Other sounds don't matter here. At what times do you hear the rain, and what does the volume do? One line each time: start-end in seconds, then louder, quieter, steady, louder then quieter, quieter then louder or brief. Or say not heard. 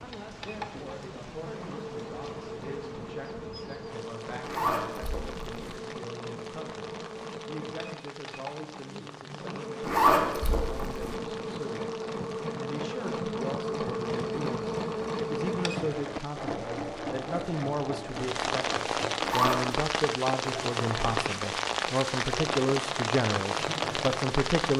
0.0-24.7 louder.